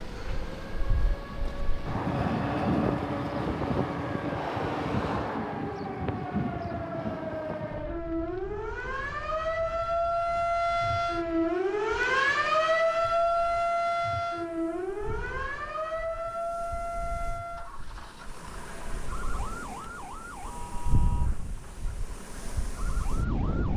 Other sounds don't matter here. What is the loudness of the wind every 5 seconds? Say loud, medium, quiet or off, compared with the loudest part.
loud, medium, quiet, quiet, medium.